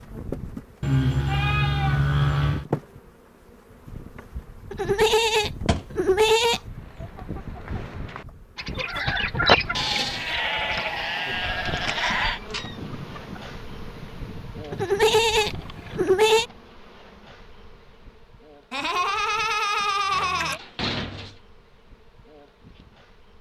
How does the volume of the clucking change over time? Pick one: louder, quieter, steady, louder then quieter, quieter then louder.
louder then quieter.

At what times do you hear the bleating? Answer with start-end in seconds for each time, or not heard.
0.8-2.6, 4.7-6.6, 9.8-12.4, 14.7-16.4, 18.7-20.6.